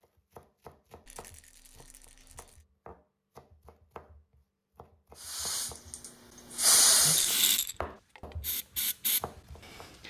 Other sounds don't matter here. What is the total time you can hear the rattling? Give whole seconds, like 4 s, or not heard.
2 s.